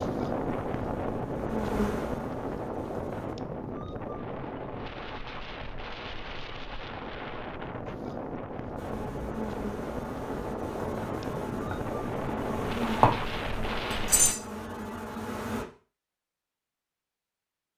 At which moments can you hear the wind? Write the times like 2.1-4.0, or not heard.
0.0-14.3.